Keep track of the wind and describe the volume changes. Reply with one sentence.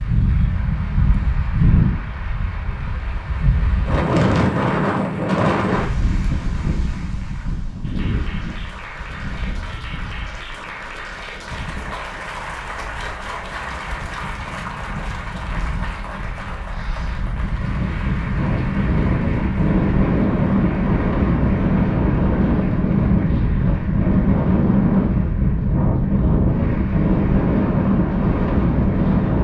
The loudness of the wind goes down, then up.